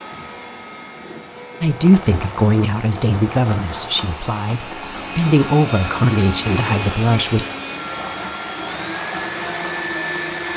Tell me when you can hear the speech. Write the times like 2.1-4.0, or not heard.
1.6-7.5.